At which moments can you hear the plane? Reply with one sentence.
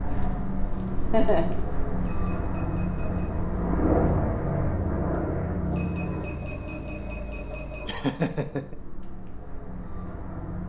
You can hear the plane from 0.0 to 10.6 s.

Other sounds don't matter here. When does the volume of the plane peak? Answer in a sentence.
The loudest moment of the plane is at 4 seconds.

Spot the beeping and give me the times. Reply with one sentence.
The beeping can be heard from 2.0 to 3.3 s and from 5.7 to 8.1 s.